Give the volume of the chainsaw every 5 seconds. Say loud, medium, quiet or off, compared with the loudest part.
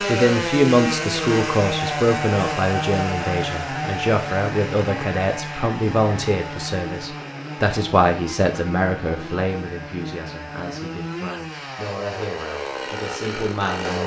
loud, medium, medium.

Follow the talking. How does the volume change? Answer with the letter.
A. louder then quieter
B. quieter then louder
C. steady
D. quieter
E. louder
D.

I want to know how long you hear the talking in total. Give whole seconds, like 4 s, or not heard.
14 s.